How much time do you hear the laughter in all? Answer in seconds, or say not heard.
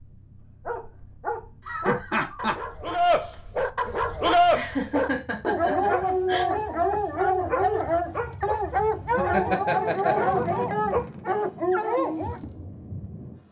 4 s.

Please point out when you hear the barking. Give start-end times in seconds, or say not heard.
0.7-12.4.